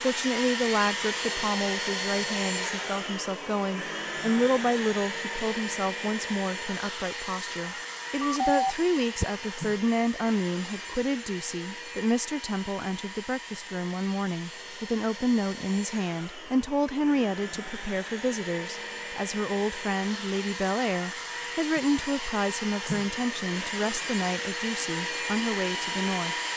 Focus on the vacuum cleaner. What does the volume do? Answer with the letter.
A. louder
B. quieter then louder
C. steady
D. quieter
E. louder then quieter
B.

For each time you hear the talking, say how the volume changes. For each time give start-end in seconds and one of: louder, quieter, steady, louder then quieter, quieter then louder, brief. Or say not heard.
0.0-26.4 steady.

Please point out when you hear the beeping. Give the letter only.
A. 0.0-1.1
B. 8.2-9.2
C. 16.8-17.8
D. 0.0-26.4
B.